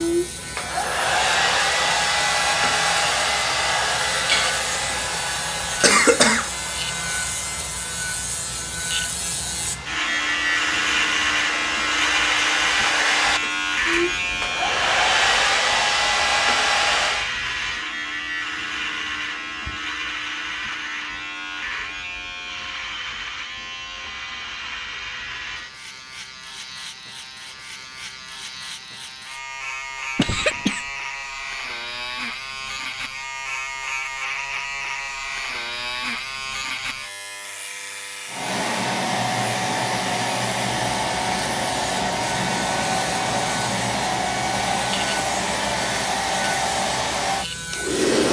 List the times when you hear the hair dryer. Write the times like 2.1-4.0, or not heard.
0.0-17.3, 38.2-48.2.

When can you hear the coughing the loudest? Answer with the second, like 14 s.
6 s.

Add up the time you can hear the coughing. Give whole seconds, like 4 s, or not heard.
2 s.